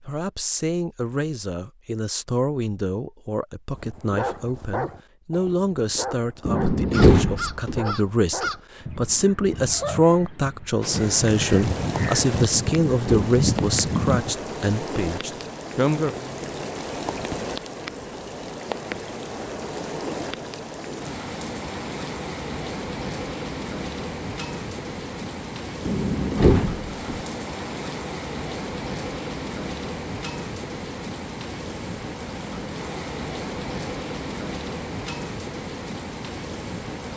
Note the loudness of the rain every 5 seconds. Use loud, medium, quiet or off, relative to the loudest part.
off, off, loud, loud, loud, loud, loud, loud.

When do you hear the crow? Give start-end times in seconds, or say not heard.
6.7-14.3.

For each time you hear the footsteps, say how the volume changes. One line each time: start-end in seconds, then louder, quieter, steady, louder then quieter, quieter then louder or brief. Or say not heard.
not heard.